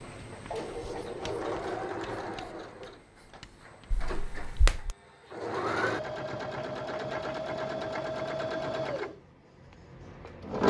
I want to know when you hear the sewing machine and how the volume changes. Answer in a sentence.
The sewing machine can be heard from 0.0 to 10.6 s, getting quieter then louder.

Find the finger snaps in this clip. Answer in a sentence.
You can hear the finger snaps from 3.9 to 5.0 s.